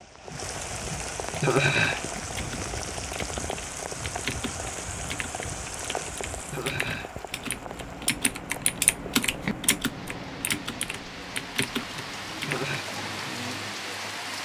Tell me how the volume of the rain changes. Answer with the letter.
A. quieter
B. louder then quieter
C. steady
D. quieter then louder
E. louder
D.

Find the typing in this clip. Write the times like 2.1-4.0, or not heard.
1.4-12.8.